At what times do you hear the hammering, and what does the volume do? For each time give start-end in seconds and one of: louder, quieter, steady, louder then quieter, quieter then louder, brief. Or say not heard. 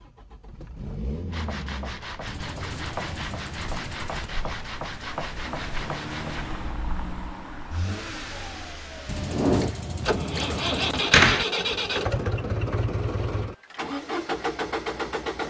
not heard.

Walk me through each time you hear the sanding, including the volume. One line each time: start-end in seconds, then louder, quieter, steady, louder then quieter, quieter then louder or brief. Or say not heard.
1.3-6.8 steady.